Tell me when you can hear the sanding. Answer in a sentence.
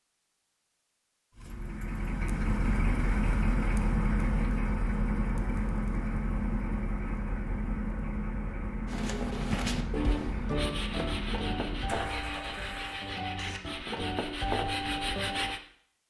The sanding can be heard from 8.8 to 15.6 s.